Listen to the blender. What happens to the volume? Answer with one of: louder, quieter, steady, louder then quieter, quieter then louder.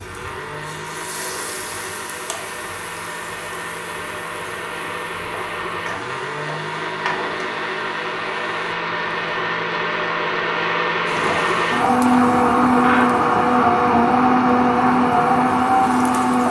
louder.